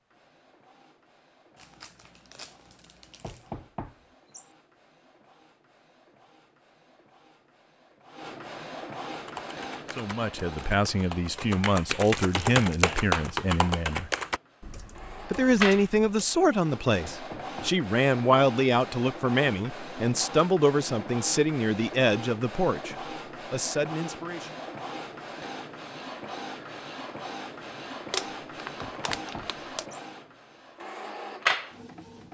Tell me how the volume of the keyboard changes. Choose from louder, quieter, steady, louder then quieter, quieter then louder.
louder then quieter.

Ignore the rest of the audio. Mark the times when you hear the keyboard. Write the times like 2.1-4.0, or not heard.
9.1-16.4.